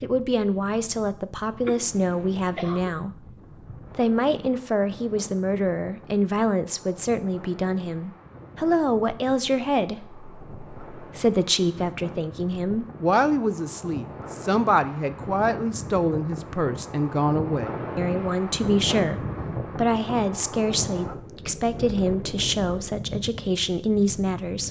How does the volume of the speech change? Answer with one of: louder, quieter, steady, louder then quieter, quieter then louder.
steady.